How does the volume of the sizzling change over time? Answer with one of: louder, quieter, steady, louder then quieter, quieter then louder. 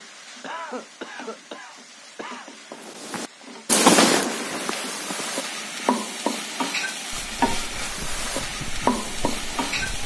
louder.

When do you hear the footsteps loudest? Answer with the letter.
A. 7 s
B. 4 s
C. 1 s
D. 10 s
B.